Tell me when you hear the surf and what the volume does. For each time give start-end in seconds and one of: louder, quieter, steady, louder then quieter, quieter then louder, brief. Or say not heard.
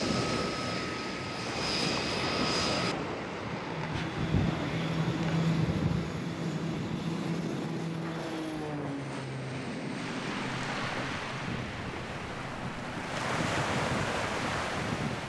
0.0-15.2 quieter then louder.